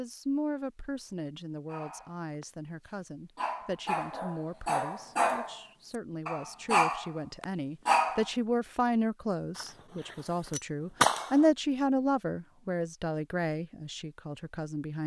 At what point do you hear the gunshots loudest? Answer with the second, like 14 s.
11 s.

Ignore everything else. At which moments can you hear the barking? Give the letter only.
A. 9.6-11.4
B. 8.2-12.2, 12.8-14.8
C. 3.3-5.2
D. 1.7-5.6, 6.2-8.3
D.